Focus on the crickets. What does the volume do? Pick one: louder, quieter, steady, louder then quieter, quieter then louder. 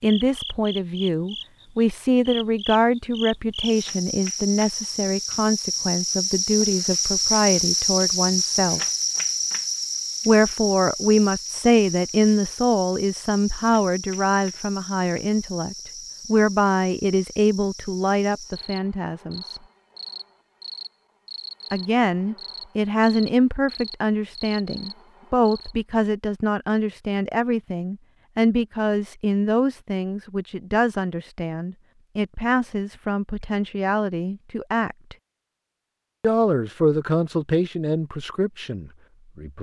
louder then quieter.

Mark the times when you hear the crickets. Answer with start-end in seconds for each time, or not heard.
0.0-25.8.